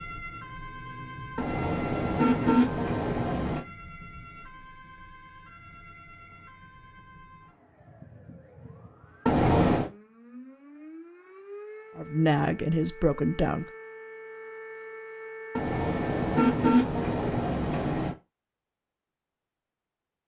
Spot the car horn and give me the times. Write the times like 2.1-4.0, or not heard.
1.4-3.6, 9.2-9.9, 15.6-18.1.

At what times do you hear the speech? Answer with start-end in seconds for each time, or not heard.
11.9-13.7.